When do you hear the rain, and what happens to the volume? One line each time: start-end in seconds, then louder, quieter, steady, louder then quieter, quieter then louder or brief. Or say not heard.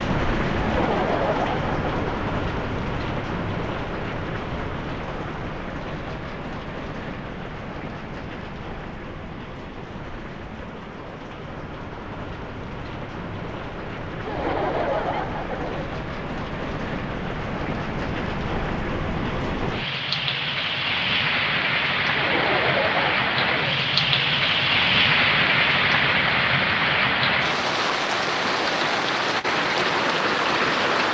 0.0-31.1 quieter then louder.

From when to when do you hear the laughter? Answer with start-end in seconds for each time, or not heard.
0.6-2.1, 14.2-15.9, 22.1-23.8.